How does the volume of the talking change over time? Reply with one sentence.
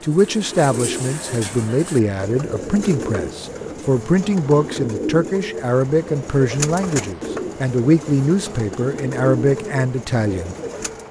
The loudness of the talking stays about the same.